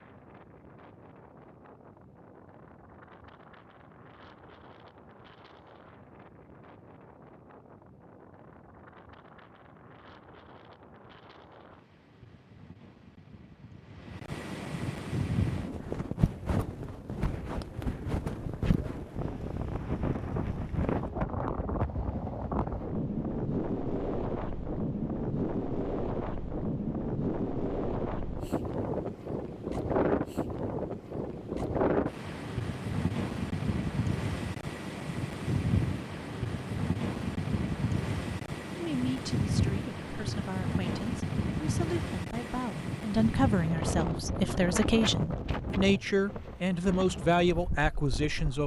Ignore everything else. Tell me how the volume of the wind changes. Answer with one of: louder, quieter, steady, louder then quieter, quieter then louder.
louder.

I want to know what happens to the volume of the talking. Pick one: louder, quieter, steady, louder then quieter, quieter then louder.
louder.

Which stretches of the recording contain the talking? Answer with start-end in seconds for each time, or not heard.
38.7-48.6.